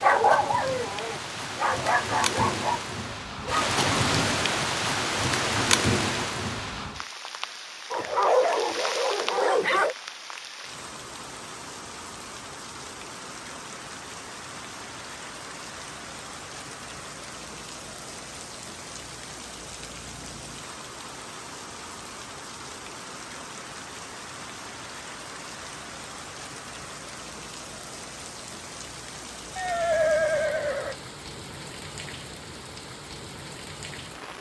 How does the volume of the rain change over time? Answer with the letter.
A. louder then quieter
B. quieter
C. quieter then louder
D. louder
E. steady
B.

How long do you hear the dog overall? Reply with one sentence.
The dog can be heard for 6 seconds in total.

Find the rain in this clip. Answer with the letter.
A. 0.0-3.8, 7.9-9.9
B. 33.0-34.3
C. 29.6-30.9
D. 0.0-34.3
D.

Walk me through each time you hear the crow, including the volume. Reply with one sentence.
The crow can't be heard in this clip.